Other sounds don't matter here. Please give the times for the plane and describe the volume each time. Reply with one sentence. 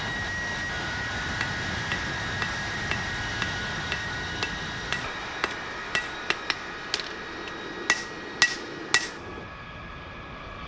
The plane can be heard from 0.0 to 10.6 s, getting quieter.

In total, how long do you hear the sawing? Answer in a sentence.
The sawing can't be heard in this clip.